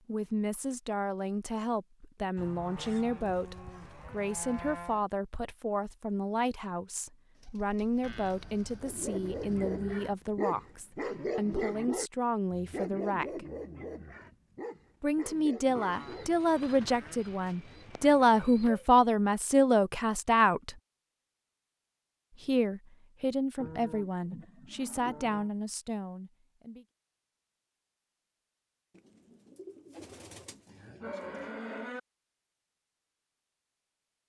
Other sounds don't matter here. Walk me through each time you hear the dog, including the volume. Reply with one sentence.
The dog can be heard from 8.8 to 16.3 s, getting quieter.